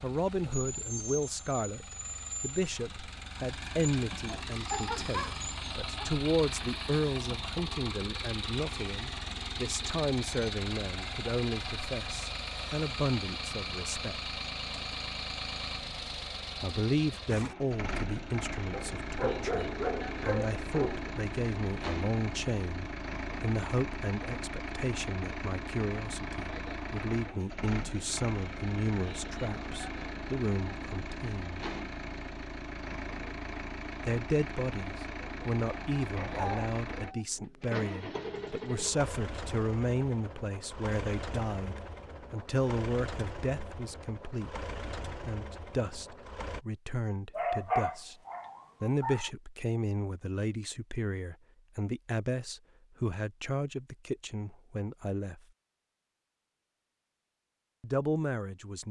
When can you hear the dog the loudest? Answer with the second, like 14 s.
48 s.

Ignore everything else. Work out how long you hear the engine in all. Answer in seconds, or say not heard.
47 s.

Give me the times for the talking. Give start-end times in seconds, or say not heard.
0.0-14.2, 16.6-31.7, 34.0-44.6, 45.2-48.2, 48.8-55.4, 57.8-58.8.